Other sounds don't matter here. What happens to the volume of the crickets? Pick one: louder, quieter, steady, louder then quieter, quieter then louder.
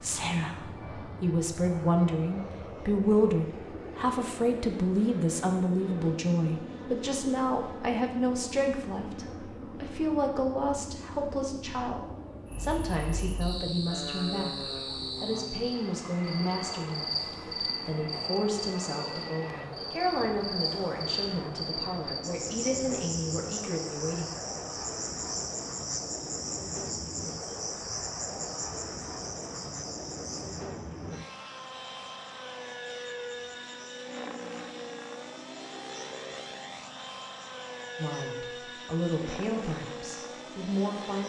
quieter.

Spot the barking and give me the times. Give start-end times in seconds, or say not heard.
not heard.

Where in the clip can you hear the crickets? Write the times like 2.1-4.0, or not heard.
12.4-41.2.